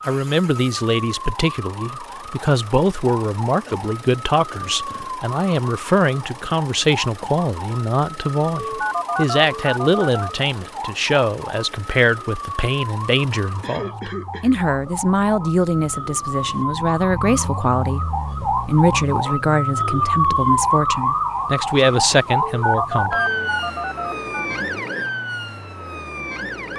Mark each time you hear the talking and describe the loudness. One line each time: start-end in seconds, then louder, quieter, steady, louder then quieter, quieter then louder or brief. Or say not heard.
0.1-23.1 steady.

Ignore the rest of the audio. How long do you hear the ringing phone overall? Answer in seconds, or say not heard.
4 s.